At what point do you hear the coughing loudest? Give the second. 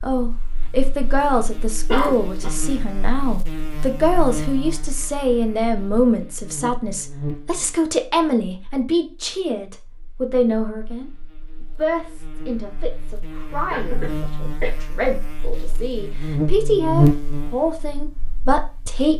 2 s.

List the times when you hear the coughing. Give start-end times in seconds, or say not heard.
1.9-2.5, 13.7-14.7.